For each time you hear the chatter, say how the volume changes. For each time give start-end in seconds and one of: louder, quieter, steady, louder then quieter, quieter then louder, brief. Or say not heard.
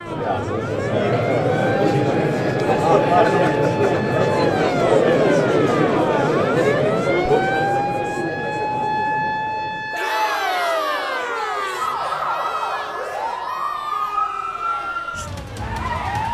0.0-16.2 quieter.